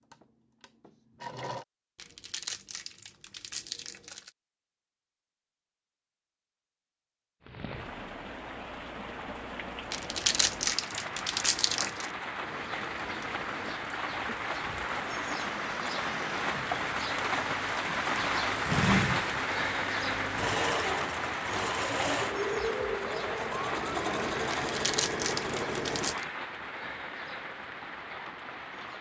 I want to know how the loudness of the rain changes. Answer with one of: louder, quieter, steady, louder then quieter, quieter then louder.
louder then quieter.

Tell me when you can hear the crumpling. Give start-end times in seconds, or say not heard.
1.9-4.3, 9.9-12.1, 24.6-26.2.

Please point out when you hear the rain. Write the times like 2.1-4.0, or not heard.
7.4-28.9.